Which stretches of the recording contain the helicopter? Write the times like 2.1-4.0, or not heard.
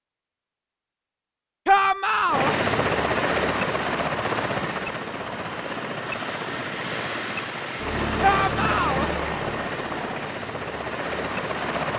2.2-11.9.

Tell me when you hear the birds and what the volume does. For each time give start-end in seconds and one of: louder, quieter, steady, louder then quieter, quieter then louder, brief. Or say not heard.
not heard.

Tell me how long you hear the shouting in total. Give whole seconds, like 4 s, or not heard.
2 s.